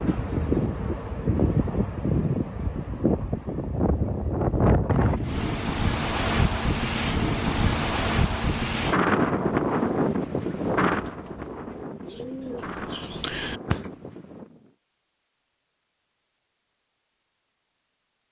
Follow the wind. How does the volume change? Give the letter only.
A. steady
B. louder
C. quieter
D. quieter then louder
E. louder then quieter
C.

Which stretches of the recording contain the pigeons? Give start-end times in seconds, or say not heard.
9.1-13.9.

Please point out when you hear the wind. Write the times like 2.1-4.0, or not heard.
0.0-14.7.